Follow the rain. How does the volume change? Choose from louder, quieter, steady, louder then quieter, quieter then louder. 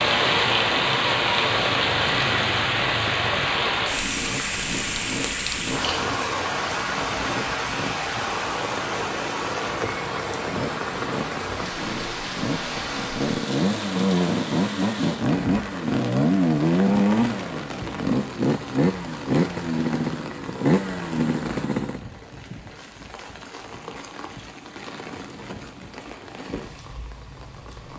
quieter.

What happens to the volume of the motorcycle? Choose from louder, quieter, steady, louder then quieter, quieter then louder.
louder.